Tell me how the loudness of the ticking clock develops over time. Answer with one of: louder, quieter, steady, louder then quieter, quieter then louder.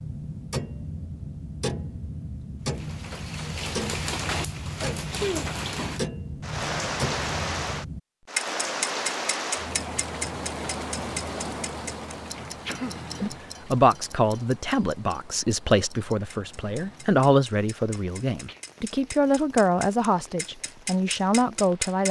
quieter then louder.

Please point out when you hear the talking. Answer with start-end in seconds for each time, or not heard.
13.2-22.0.